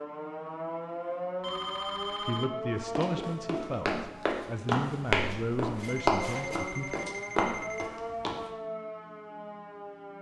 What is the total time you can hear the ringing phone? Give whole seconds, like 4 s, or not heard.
3 s.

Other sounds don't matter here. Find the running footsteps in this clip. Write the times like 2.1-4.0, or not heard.
2.8-8.5.